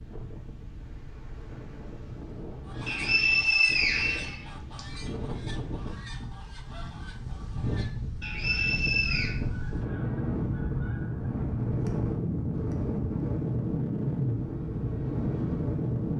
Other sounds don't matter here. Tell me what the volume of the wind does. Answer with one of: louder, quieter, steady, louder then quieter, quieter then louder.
louder.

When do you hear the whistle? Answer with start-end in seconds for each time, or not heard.
2.9-4.8, 8.2-9.3.